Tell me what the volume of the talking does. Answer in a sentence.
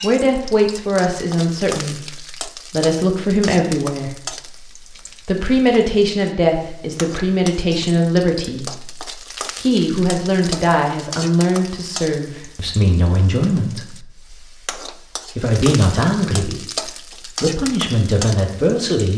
The volume of the talking stays about the same.